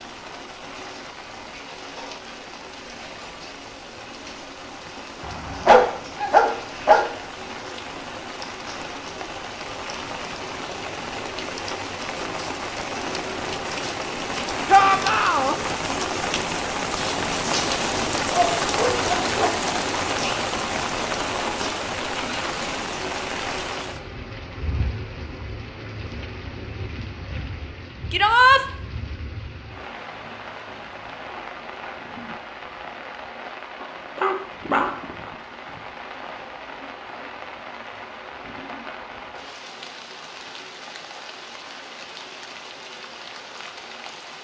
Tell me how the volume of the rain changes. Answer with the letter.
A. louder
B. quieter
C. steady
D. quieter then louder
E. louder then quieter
E.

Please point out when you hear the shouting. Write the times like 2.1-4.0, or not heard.
14.7-15.6, 28.1-28.6.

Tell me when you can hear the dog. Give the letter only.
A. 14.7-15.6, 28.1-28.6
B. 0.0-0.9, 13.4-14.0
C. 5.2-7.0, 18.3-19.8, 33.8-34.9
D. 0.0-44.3
C.